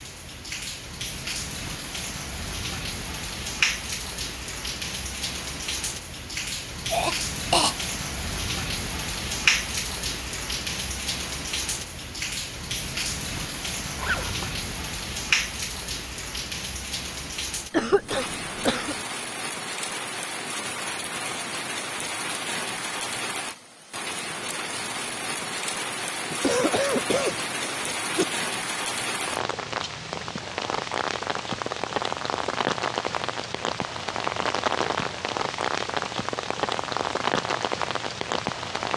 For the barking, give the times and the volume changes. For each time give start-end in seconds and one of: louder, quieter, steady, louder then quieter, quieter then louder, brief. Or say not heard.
not heard.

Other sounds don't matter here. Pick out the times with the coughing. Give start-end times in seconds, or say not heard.
6.9-7.8, 17.7-18.9, 26.3-28.2.